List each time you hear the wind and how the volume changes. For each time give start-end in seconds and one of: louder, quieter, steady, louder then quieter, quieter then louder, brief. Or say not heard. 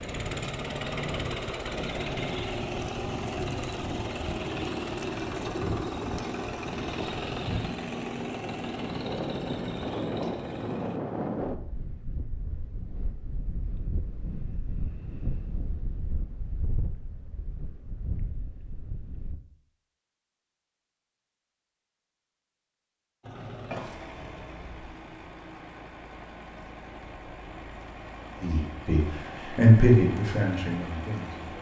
0.0-19.4 louder then quieter.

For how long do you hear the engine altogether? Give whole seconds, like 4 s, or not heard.
19 s.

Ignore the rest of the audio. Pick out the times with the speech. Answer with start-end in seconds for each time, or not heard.
28.4-31.5.